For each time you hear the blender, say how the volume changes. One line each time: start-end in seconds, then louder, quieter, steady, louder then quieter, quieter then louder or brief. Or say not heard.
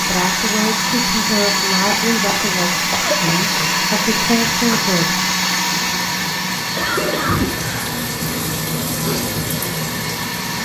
0.0-10.5 quieter.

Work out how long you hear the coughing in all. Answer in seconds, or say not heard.
2 s.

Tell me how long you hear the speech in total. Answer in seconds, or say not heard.
5 s.